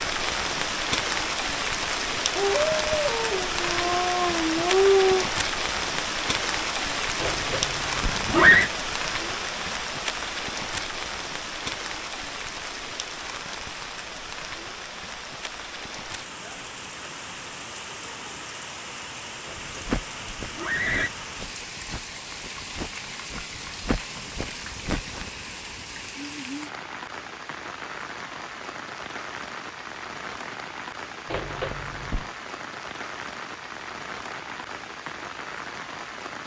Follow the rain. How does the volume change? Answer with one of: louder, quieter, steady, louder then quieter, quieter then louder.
quieter.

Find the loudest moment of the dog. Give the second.
5 s.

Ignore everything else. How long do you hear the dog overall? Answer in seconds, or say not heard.
3 s.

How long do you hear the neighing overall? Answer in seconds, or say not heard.
4 s.